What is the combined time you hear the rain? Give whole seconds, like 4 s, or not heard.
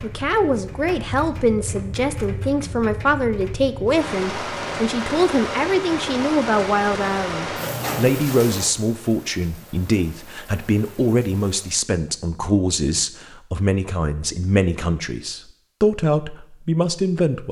12 s.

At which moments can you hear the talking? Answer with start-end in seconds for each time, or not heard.
0.0-17.4.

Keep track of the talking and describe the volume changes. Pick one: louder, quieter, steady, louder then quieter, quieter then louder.
steady.